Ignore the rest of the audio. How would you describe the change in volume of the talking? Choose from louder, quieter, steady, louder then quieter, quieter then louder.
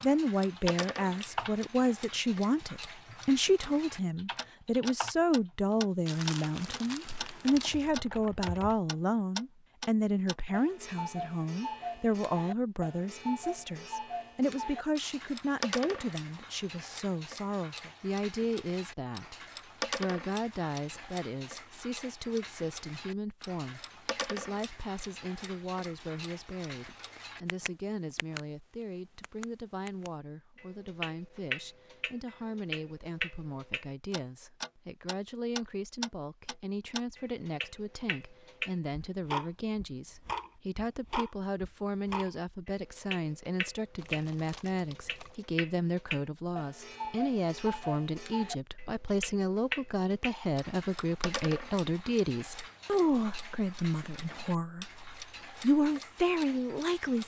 quieter then louder.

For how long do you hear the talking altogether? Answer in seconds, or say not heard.
57 s.